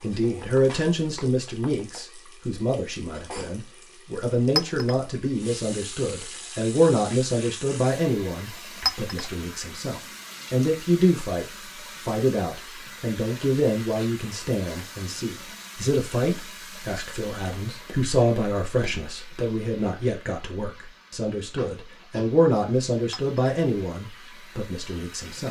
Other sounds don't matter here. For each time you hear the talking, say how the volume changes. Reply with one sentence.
The talking can be heard from 0.0 to 25.4 s, at a steady volume.